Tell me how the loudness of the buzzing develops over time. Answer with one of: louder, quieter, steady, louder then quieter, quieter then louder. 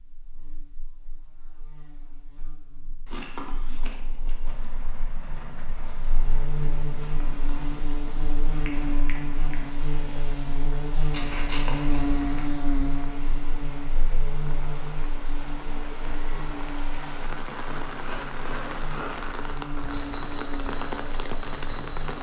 louder then quieter.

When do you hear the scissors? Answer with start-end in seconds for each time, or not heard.
3.1-4.3, 11.1-12.6, 17.9-19.1.